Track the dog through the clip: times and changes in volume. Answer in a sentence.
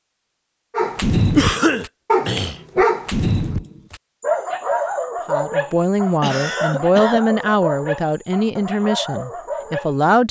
You can hear the dog from 0.7 to 10.1 s, getting quieter.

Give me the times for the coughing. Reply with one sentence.
You can hear the coughing from 1.4 to 2.6 s and from 6.2 to 7.2 s.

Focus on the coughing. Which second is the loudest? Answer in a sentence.
The loudest moment of the coughing is at 2 seconds.